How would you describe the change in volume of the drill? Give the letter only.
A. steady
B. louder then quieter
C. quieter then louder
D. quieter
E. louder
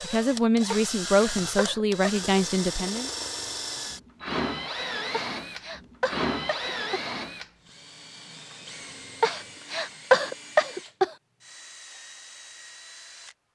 D.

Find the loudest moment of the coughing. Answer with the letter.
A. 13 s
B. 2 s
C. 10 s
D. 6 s
C.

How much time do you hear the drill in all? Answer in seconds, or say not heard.
13 s.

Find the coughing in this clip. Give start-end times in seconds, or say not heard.
0.7-2.3, 5.1-7.0, 9.2-11.1.